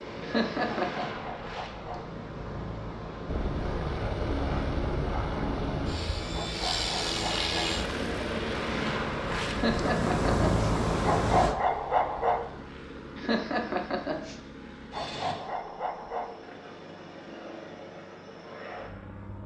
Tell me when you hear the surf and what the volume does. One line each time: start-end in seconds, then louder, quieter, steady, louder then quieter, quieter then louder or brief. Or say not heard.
0.0-11.6 louder.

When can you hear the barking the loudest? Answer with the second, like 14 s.
12 s.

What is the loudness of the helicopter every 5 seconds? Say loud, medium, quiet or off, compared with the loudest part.
loud, loud, medium, medium.